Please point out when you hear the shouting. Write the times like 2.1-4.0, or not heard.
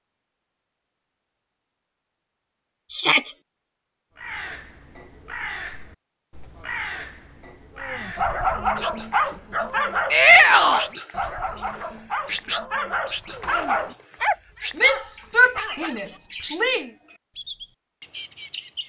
2.9-3.4, 10.1-10.8, 14.8-16.9.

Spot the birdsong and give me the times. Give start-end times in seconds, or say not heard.
4.2-18.8.